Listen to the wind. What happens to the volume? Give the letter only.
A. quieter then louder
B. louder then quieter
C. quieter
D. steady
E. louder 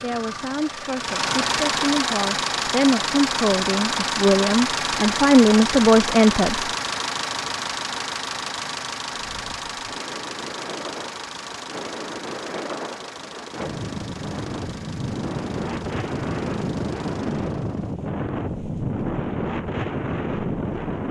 E.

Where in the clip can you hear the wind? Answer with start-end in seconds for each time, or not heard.
9.1-21.0.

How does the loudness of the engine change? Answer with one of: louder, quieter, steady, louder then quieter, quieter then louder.
quieter.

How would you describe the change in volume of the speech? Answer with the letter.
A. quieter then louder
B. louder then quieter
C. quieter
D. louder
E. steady
D.